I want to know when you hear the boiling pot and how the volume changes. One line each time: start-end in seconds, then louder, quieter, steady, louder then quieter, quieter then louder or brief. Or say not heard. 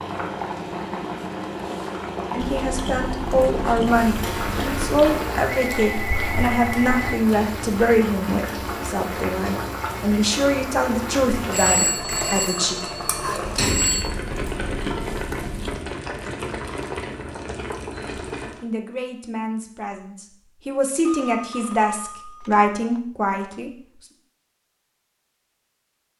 0.0-18.6 steady.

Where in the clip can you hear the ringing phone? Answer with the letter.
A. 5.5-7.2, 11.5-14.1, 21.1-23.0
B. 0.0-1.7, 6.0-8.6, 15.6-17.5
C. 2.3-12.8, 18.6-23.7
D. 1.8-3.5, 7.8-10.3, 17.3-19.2
A.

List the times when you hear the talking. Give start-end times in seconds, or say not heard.
2.3-12.8, 18.6-23.7.